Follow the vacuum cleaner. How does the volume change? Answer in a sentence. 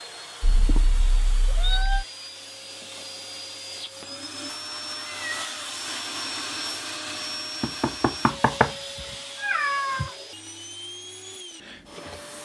The volume of the vacuum cleaner goes up, then down.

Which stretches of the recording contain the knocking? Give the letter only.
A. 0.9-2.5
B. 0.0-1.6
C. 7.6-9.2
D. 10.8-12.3
C.